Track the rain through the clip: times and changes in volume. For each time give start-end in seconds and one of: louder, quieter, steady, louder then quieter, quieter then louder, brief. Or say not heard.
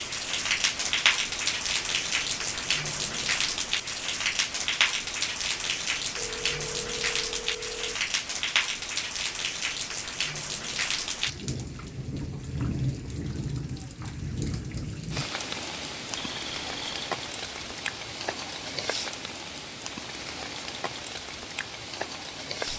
0.0-22.7 quieter.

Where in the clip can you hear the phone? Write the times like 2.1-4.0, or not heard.
6.2-8.0, 16.1-16.9.